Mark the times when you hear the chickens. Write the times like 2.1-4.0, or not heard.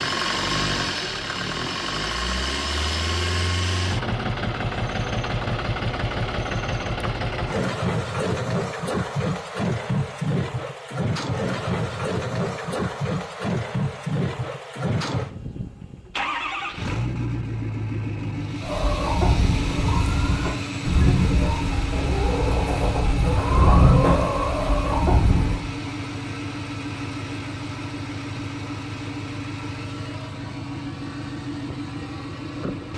18.6-25.6.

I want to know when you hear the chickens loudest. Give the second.
24 s.